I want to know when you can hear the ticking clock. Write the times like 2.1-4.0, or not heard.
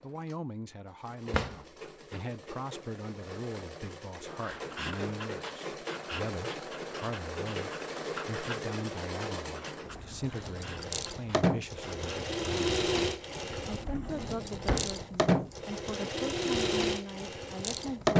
not heard.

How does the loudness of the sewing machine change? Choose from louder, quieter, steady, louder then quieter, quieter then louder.
louder.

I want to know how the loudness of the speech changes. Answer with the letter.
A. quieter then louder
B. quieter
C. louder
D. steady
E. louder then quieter
D.